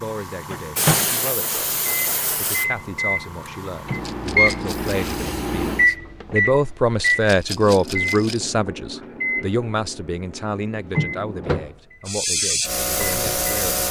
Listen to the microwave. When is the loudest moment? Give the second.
6 s.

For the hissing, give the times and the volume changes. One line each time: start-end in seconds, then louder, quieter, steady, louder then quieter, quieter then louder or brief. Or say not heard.
0.0-6.0 quieter
12.1-13.8 brief.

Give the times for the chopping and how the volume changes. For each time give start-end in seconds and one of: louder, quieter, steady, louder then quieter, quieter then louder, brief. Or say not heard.
not heard.